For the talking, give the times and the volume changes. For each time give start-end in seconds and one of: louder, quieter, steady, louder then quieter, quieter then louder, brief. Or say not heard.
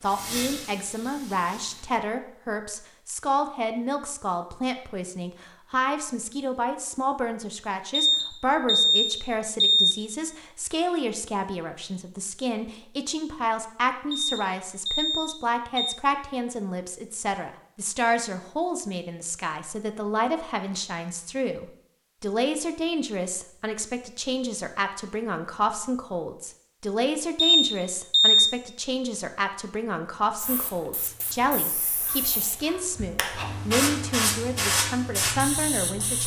0.0-36.2 steady.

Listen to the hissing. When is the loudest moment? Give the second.
34 s.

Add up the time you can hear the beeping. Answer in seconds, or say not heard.
5 s.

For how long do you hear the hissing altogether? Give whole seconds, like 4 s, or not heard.
8 s.